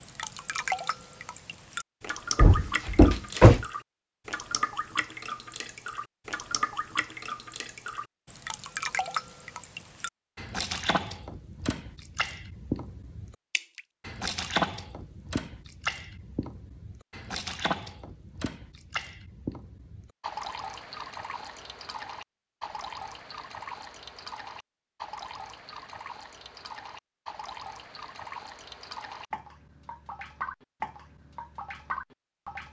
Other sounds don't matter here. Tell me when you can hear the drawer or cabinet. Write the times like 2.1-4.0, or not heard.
2.4-3.6.